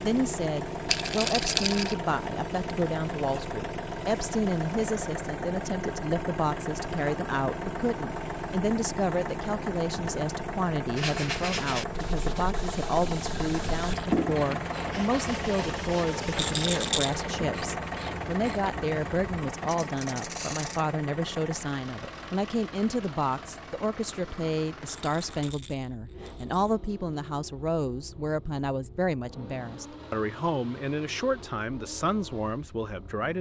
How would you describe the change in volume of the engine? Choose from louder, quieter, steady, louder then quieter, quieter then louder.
quieter.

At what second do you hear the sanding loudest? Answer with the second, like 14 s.
14 s.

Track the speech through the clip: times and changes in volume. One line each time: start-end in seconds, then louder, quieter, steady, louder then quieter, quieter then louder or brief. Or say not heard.
0.0-33.3 steady.